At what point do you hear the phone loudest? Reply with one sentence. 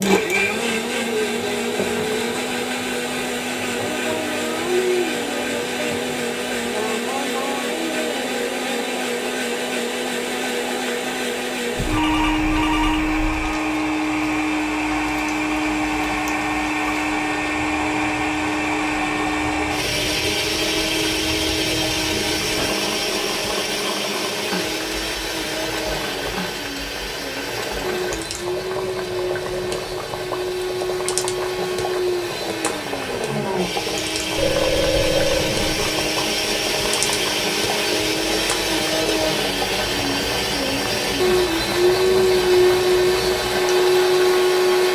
The volume of the phone peaks at 35 seconds.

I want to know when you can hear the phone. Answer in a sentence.
The phone can be heard from 11.8 to 13.3 s and from 34.4 to 36.0 s.